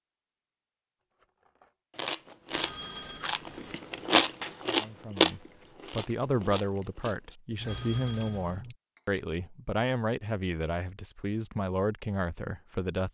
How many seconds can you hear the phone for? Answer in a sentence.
The phone can be heard for 2 seconds in total.